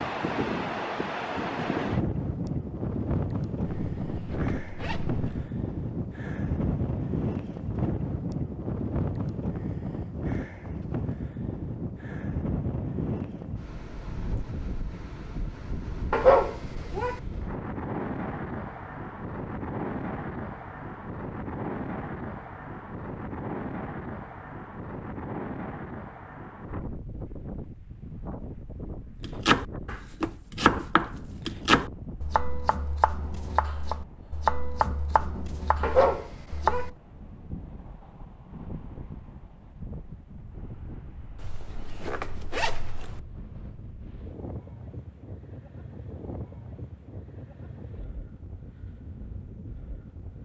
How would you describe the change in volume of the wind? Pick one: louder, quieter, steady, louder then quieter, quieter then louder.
quieter.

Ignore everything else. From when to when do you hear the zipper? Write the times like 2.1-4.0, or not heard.
3.6-5.5, 41.4-43.2.